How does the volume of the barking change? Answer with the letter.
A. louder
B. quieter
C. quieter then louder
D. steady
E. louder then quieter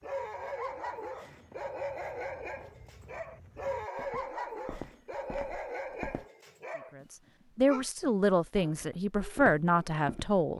B.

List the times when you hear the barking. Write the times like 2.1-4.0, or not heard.
0.0-10.5.